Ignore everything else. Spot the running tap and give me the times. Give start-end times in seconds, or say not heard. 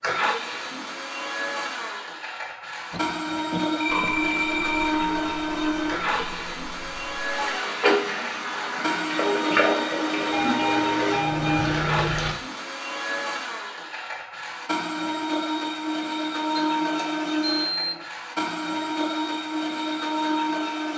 3.9-12.3.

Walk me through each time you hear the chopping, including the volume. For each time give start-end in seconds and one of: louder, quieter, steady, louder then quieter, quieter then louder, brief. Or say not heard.
not heard.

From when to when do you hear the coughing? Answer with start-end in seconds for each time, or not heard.
2.9-4.2.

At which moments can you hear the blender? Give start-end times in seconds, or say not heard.
0.0-20.9.